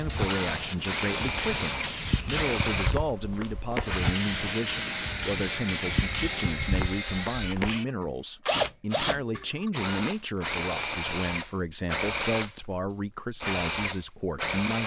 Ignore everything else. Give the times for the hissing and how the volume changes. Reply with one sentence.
The hissing can be heard from 0.0 to 7.8 s, at a steady volume.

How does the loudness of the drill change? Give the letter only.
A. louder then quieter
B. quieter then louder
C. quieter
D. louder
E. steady
E.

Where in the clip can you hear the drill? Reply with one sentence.
The drill can be heard from 0.1 to 14.8 s.